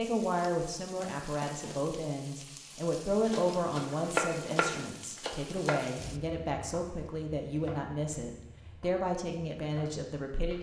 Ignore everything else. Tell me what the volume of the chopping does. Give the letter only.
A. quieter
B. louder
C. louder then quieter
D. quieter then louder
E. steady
A.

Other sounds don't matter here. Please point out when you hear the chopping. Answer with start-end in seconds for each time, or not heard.
3.1-10.5.